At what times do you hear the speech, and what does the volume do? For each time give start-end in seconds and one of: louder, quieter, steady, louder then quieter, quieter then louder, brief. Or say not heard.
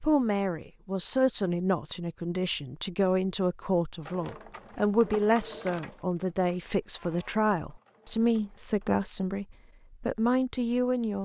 0.0-11.2 steady.